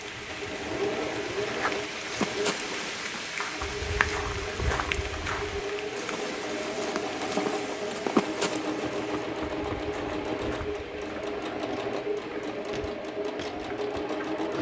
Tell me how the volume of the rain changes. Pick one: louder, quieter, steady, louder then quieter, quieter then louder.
quieter.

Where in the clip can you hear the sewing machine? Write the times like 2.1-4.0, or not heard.
0.0-14.5.